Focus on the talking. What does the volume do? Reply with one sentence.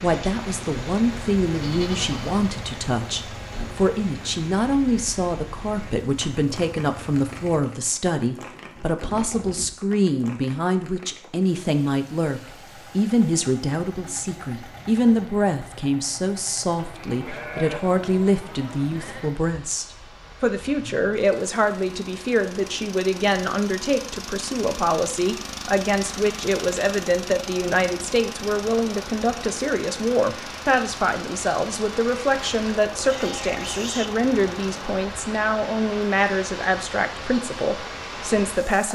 The volume of the talking stays about the same.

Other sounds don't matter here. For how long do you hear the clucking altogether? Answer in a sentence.
You can't hear the clucking here.